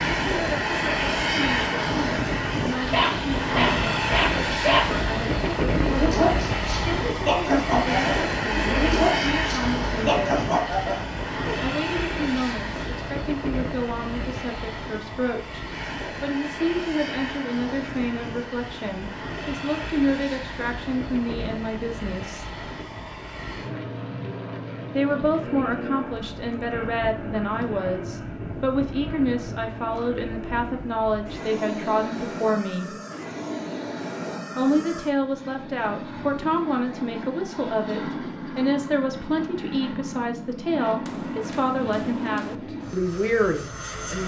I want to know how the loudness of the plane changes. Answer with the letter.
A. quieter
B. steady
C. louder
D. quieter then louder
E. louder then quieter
A.